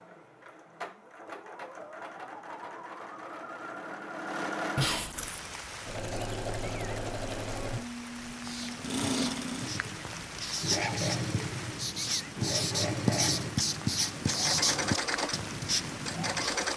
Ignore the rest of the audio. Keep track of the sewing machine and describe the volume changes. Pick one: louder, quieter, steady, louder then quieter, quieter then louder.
louder.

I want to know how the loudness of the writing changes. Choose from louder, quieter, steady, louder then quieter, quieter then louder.
louder.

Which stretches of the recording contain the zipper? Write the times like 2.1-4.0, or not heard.
4.8-5.4.